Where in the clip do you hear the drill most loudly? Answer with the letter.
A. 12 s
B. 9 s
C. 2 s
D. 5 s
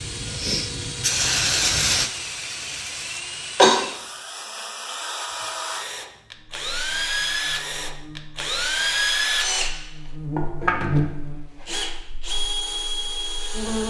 B.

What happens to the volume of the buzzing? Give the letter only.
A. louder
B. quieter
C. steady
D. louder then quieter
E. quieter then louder
D.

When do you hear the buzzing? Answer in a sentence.
The buzzing can be heard from 6.3 to 13.8 s.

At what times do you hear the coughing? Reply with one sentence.
The coughing can be heard from 3.1 to 3.8 s.